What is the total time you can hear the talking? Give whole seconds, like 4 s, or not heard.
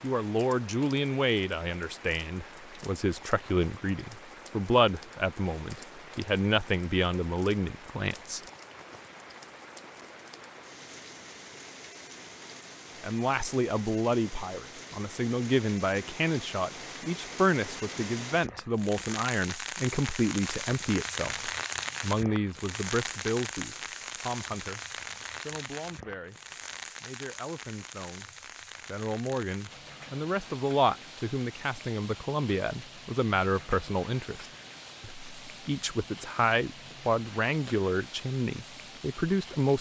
34 s.